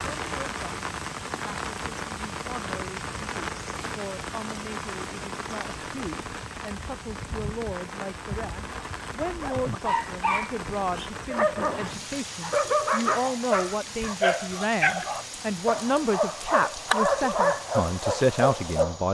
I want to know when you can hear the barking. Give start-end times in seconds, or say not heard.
9.2-19.0.